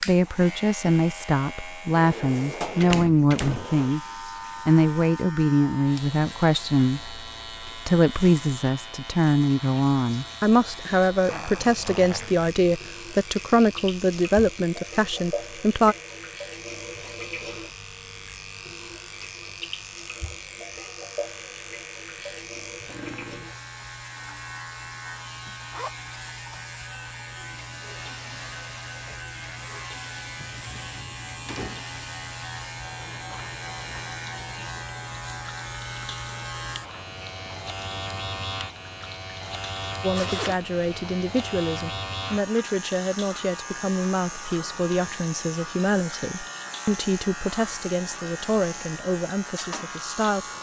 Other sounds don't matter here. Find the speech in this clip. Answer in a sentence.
The speech can be heard from 0.1 to 4.0 s, from 4.7 to 15.9 s and from 40.0 to 50.5 s.